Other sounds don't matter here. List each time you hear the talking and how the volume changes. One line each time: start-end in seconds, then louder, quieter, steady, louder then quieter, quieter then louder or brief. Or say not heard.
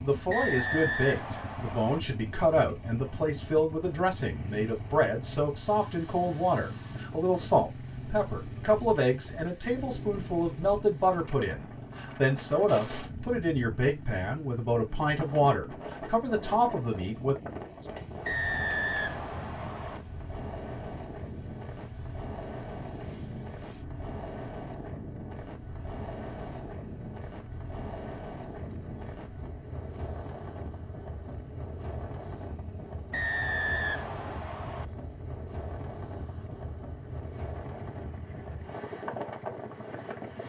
0.0-17.4 steady.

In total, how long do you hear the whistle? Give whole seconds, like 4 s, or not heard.
5 s.